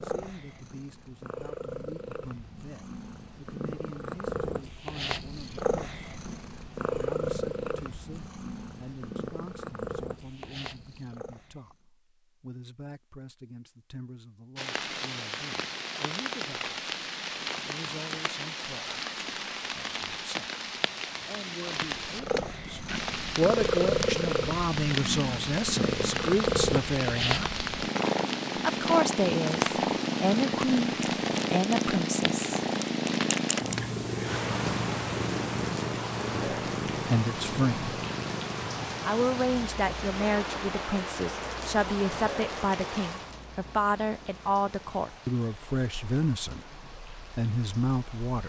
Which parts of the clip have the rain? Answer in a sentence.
You can hear the rain from 14.6 to 48.4 s.